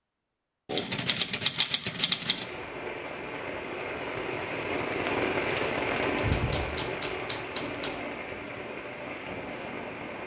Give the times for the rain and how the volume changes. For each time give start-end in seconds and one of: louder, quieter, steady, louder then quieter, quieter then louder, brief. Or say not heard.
2.0-10.2 louder then quieter.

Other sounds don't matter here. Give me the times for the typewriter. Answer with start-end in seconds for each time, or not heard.
0.7-2.5, 6.3-8.0.